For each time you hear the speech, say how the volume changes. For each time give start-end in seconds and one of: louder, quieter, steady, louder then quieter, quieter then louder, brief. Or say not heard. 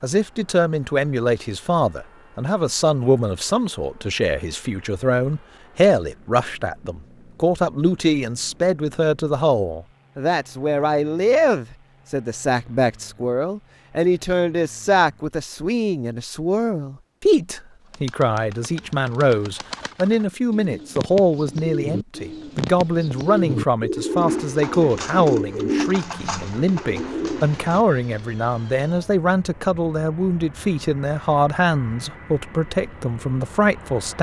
0.0-34.1 steady.